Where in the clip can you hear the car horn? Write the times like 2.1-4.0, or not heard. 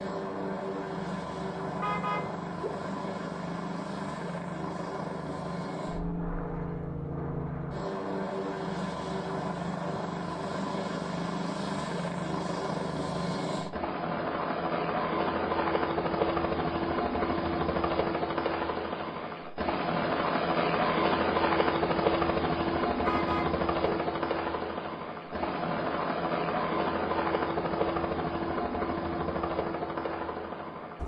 1.8-2.8, 23.1-23.9.